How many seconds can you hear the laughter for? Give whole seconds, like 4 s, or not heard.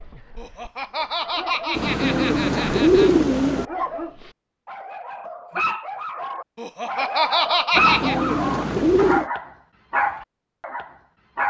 4 s.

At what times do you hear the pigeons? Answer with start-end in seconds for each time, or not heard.
1.8-3.6, 7.8-9.2.